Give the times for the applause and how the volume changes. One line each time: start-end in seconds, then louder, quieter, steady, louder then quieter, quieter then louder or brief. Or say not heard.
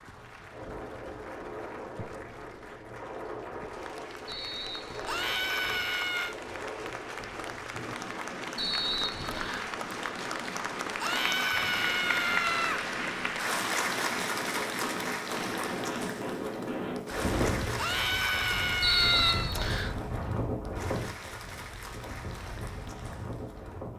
0.0-23.9 louder then quieter.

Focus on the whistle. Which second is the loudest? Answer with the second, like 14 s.
19 s.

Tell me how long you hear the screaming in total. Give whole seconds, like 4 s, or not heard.
5 s.